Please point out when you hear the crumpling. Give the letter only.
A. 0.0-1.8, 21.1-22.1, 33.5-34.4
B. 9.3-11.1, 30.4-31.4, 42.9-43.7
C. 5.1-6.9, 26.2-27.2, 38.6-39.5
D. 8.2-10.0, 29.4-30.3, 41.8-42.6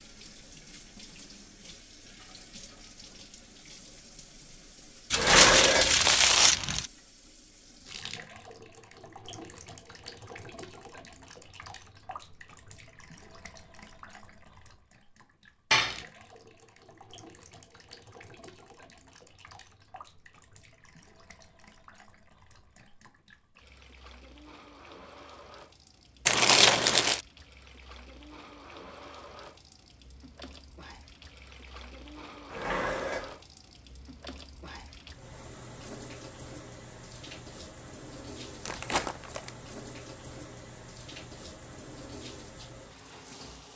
C.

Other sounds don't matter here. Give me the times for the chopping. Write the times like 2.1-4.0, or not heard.
not heard.